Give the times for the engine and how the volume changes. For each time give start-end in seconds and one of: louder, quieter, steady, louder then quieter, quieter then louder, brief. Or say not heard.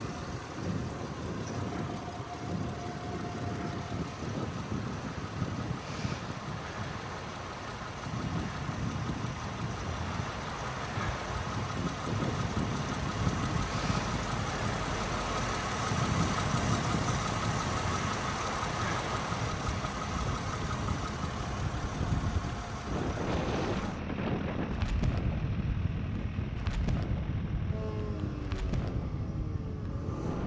0.0-30.4 louder then quieter.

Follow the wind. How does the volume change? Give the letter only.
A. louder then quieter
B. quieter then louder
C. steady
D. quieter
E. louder
C.